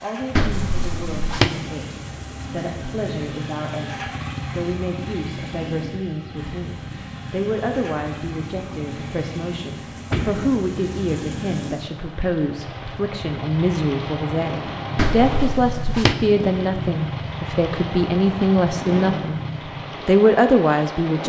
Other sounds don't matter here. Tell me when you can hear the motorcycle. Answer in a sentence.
The motorcycle can be heard from 0.0 to 20.1 s.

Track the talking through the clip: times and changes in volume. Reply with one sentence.
You can hear the talking from 0.0 to 19.4 s, getting louder; and briefly from 20.1 to 21.2 s.